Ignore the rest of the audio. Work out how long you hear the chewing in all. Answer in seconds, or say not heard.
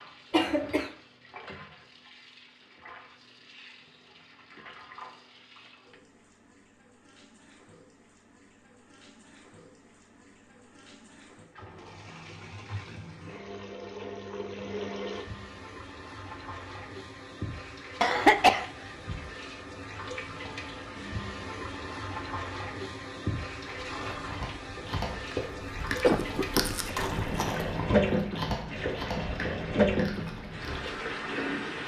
7 s.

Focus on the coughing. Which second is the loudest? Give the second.
18 s.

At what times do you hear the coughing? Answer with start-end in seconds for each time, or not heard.
0.3-0.9, 18.0-18.6, 26.0-26.6.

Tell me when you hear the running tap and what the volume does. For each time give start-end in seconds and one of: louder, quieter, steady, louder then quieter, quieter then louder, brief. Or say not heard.
0.0-31.8 louder.